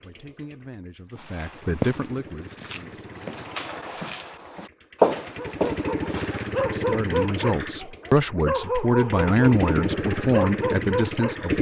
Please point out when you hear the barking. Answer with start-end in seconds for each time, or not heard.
5.3-11.4.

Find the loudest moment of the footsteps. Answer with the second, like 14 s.
5 s.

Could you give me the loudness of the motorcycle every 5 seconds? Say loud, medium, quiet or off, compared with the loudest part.
quiet, loud, loud.